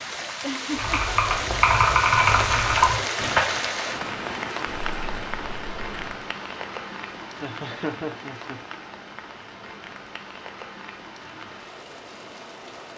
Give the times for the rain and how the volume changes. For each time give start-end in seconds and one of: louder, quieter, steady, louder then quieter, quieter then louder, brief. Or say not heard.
0.0-12.9 quieter.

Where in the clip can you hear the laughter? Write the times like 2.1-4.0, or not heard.
0.4-1.0, 7.4-8.6.